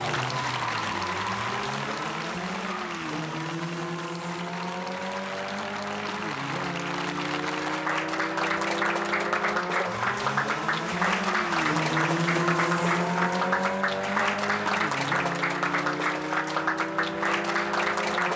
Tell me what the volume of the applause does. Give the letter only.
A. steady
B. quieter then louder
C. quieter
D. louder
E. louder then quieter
D.